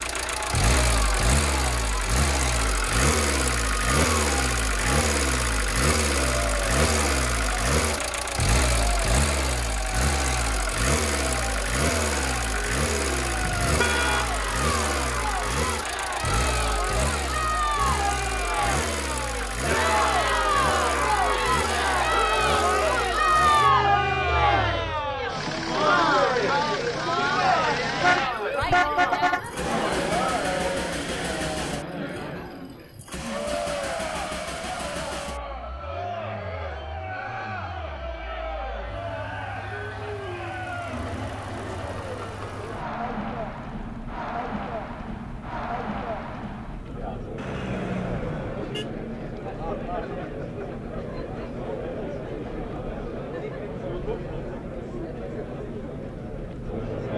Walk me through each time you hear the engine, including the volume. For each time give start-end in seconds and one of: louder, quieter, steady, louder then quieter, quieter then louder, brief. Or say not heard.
0.0-57.1 quieter.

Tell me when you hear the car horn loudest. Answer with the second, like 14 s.
29 s.